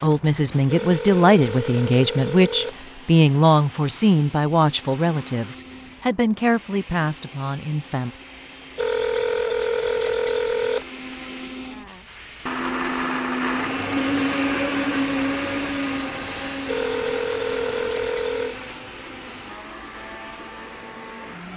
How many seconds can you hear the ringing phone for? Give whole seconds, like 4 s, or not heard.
6 s.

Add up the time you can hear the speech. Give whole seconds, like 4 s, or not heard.
8 s.